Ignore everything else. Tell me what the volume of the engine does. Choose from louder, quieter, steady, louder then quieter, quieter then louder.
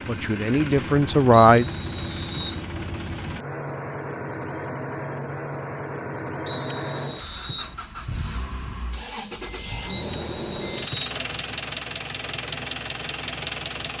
steady.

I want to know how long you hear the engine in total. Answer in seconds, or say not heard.
14 s.